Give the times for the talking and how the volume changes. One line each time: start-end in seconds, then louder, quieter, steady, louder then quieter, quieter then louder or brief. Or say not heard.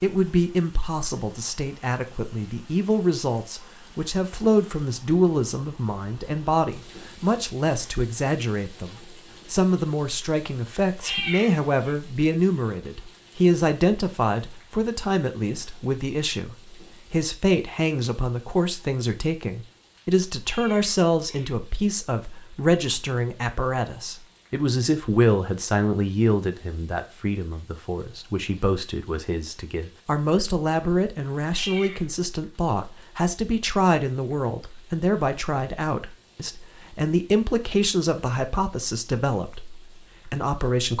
0.0-40.9 steady.